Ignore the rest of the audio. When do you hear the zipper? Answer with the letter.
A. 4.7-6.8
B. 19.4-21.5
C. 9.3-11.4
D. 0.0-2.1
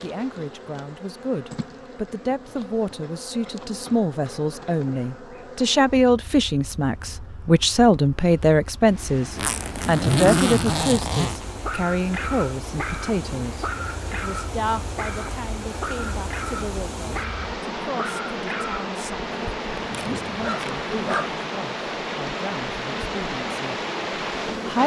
C.